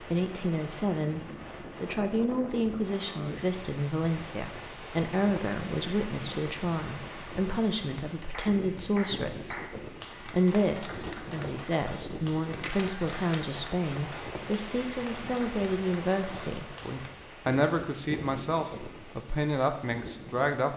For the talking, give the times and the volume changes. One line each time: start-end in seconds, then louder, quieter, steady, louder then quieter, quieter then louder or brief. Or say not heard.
0.0-1.2 brief
1.8-9.6 steady
10.2-20.7 steady.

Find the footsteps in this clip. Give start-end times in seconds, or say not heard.
not heard.